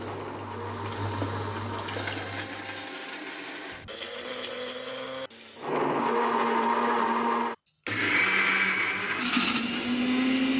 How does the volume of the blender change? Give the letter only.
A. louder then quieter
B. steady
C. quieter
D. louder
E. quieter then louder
D.